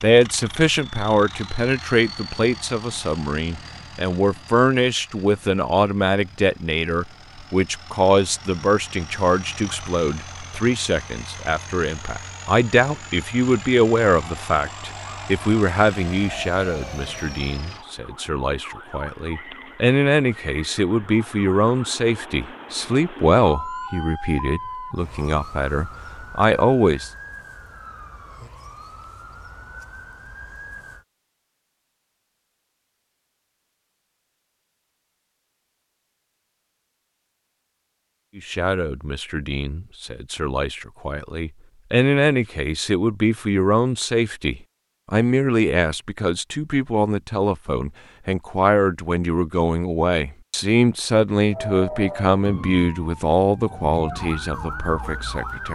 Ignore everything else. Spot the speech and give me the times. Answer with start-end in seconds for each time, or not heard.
0.0-27.1, 38.4-55.7.